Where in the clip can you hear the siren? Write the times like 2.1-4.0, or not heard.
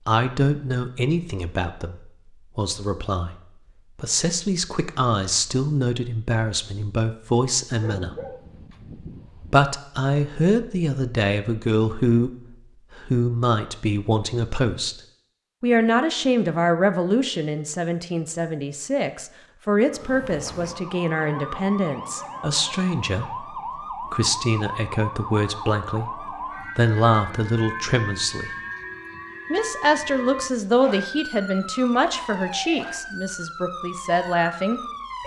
19.9-35.2.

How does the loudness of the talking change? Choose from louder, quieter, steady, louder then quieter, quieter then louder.
steady.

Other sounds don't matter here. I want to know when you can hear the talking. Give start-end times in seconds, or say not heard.
0.1-3.4, 4.0-8.2, 9.5-15.0, 15.6-28.6, 29.5-34.8.